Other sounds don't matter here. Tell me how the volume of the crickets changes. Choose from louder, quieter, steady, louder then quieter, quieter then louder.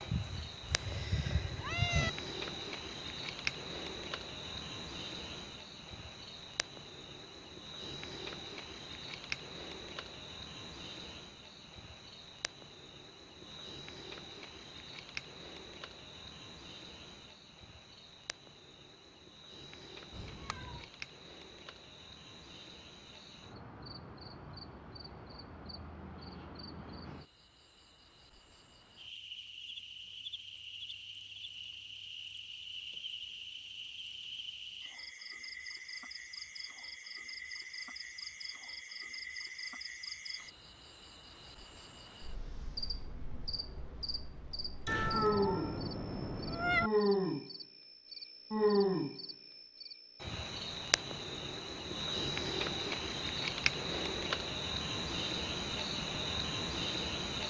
quieter then louder.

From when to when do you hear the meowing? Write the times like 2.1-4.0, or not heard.
0.1-2.1, 20.1-20.9, 44.9-46.9.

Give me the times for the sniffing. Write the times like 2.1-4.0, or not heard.
not heard.